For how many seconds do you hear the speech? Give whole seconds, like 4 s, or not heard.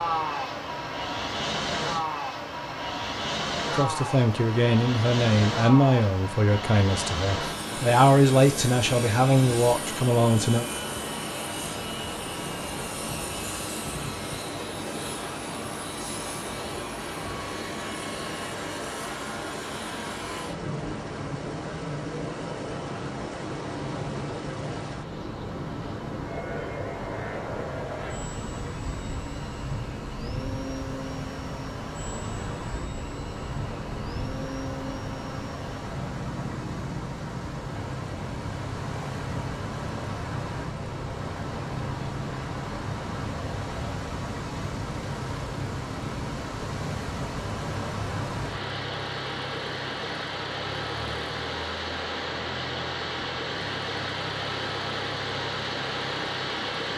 7 s.